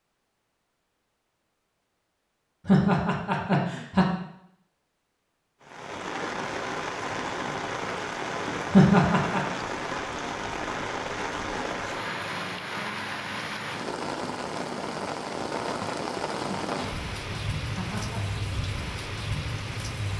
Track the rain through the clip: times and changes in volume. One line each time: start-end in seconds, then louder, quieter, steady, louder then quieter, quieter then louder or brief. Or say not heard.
5.6-20.1 steady.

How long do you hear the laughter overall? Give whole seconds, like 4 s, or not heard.
4 s.